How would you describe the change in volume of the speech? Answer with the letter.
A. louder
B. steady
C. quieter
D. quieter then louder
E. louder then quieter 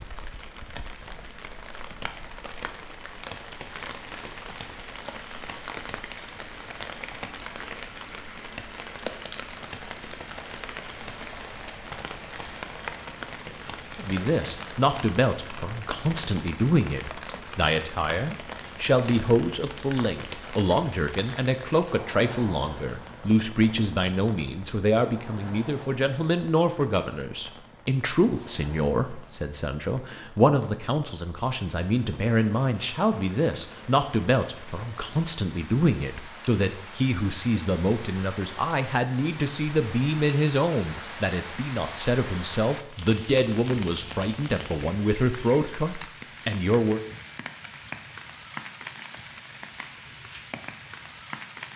B.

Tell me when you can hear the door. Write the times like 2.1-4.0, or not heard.
not heard.